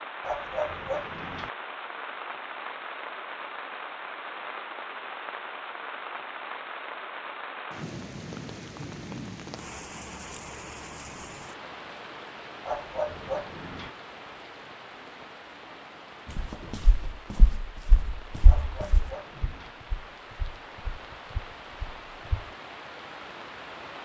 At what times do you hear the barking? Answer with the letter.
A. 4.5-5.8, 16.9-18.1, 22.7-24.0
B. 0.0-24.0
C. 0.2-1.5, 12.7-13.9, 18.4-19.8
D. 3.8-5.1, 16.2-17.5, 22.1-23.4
C.